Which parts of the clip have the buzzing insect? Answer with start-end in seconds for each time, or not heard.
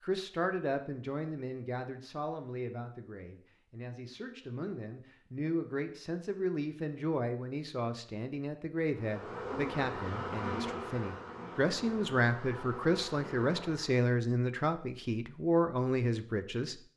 8.9-14.1.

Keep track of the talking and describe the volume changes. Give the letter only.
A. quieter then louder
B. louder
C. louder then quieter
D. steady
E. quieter
B.